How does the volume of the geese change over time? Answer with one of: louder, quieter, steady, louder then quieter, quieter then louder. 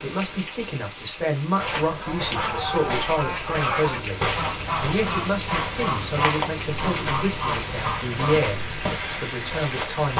steady.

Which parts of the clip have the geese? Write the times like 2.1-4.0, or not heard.
1.6-9.0.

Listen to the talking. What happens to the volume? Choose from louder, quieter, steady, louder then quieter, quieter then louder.
steady.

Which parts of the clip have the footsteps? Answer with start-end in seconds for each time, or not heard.
1.6-10.1.